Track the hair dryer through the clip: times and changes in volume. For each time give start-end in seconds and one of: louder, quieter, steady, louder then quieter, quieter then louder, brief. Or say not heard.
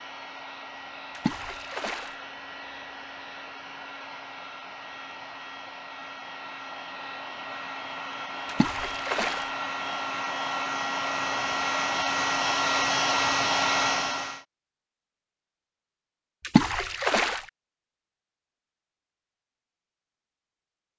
0.0-14.4 louder.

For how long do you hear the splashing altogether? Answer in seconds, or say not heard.
3 s.